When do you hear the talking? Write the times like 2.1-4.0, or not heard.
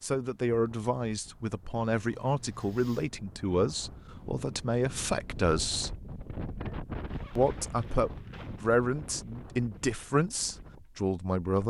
0.0-5.9, 7.3-11.6.